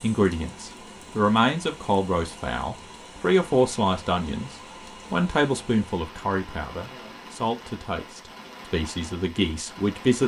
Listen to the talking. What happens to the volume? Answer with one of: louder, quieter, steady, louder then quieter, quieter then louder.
quieter.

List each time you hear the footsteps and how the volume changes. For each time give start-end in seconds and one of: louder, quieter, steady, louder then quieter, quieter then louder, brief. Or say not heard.
not heard.